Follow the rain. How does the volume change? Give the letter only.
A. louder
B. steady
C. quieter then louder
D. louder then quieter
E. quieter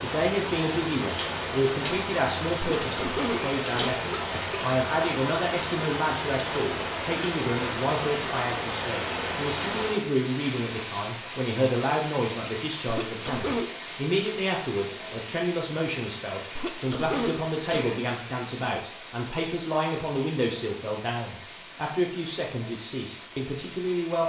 E.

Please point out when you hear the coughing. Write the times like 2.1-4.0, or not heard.
2.6-4.6, 12.8-13.8, 16.6-18.1.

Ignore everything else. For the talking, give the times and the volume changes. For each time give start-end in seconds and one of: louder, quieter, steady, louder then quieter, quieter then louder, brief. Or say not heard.
0.0-24.2 steady.